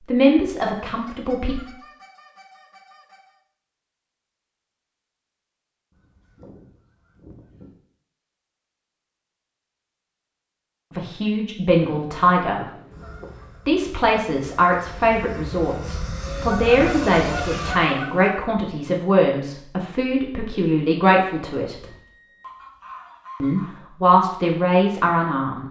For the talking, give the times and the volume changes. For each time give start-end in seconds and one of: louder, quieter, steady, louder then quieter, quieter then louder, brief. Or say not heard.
0.1-1.6 brief
10.9-12.6 brief
13.7-21.8 steady
23.4-25.6 brief.